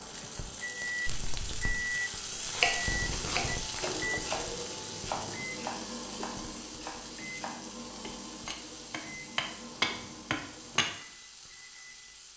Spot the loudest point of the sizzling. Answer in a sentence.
The volume of the sizzling peaks at 3 seconds.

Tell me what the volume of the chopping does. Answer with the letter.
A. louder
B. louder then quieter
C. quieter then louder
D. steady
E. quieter
C.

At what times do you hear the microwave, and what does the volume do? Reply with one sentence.
The microwave can be heard from 0.0 to 12.3 s, getting quieter.